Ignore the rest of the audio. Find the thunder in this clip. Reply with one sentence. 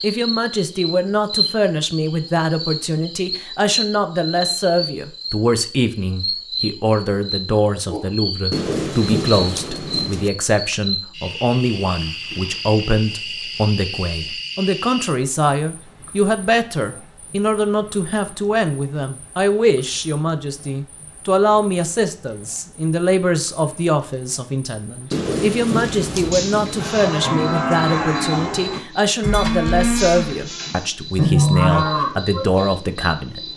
You can hear the thunder from 8.5 to 10.3 s and from 25.1 to 26.9 s.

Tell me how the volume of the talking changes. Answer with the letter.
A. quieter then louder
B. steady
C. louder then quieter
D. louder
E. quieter
B.